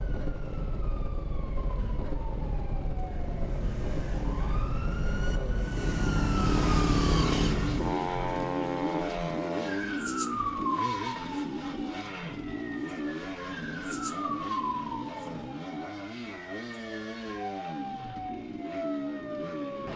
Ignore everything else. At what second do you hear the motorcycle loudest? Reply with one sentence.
The loudest moment of the motorcycle is at 7 seconds.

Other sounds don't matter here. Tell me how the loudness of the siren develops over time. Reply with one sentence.
The loudness of the siren goes up, then down.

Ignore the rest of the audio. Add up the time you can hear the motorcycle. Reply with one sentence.
The motorcycle can be heard for 20 seconds in total.